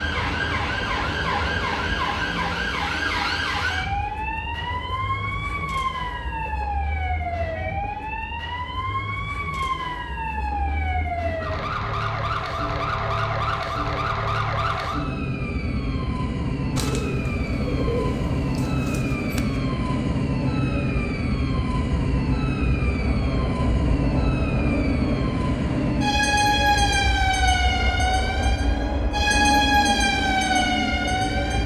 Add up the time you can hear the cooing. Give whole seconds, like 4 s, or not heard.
3 s.